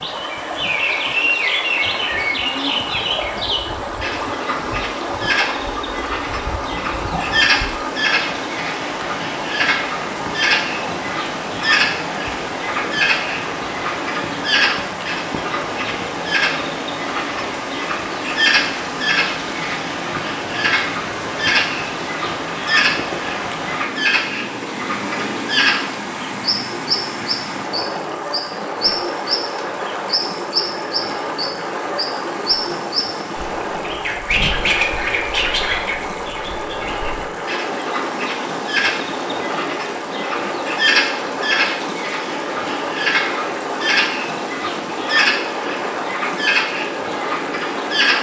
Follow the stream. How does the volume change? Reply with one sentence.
The loudness of the stream stays about the same.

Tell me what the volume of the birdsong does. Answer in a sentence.
The loudness of the birdsong stays about the same.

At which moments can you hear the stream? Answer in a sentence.
The stream can be heard from 0.0 to 48.1 s.